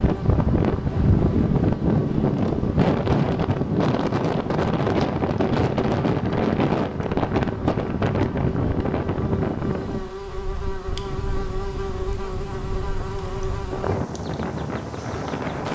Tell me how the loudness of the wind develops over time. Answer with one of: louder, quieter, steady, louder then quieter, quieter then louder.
quieter.